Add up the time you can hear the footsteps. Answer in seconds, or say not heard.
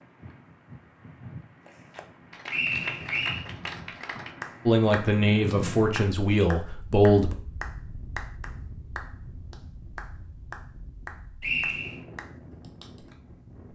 not heard.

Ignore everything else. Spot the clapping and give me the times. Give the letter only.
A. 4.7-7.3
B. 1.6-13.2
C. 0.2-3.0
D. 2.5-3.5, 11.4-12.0
B.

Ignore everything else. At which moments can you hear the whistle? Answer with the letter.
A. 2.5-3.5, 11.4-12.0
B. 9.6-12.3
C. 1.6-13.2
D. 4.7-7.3
A.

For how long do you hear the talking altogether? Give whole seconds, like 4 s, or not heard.
3 s.